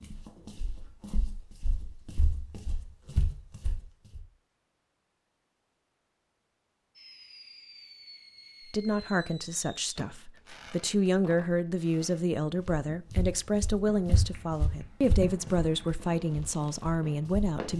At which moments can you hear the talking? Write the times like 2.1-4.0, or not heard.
8.7-17.7.